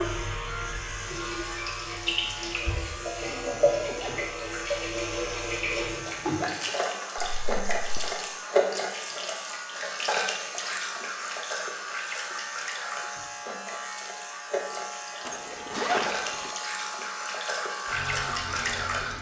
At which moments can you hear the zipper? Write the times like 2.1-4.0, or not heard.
3.0-4.2, 7.2-8.1, 15.2-16.6.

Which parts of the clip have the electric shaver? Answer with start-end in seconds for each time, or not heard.
0.0-19.1.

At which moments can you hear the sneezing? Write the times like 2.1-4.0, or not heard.
not heard.